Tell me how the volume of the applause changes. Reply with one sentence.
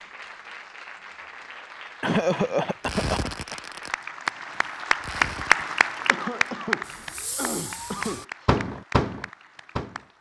The volume of the applause goes up, then down.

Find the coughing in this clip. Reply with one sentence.
You can hear the coughing from 2.0 to 3.5 s and from 6.1 to 8.4 s.